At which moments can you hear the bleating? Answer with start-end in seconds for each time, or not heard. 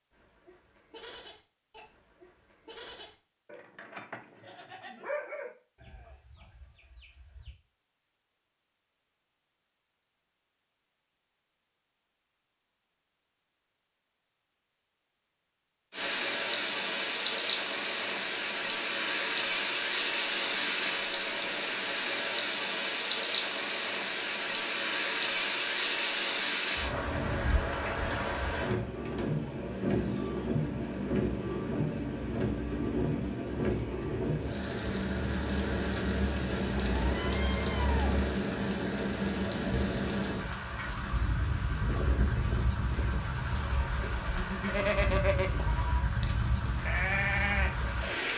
0.1-7.5, 41.7-48.3.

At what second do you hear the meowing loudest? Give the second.
38 s.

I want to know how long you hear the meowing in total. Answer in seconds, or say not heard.
2 s.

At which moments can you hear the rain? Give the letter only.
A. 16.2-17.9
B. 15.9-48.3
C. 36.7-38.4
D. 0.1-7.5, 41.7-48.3
B.